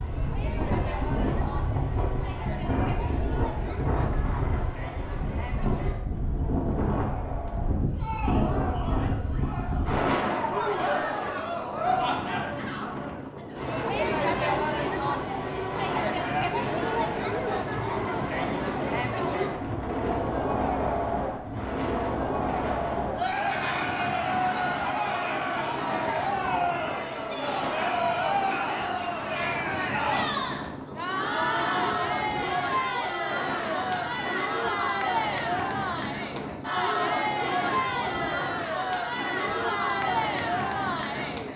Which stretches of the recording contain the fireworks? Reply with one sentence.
You can't hear the fireworks here.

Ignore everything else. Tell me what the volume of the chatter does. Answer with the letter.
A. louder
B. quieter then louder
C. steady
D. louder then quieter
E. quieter
A.